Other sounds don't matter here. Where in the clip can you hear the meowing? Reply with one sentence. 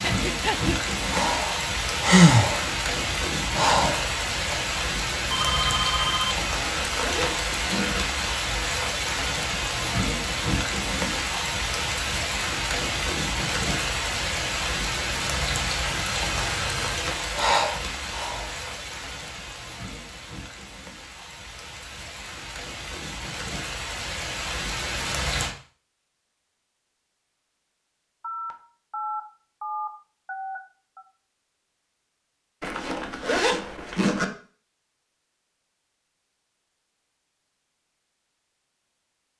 You can't hear the meowing here.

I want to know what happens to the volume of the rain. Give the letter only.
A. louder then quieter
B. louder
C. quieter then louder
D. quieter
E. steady
D.